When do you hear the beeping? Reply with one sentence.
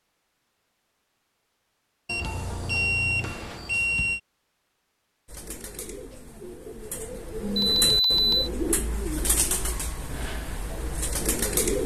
The beeping can be heard from 2.0 to 4.2 s and from 7.5 to 8.5 s.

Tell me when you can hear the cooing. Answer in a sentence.
The cooing can be heard from 5.2 to 11.8 s.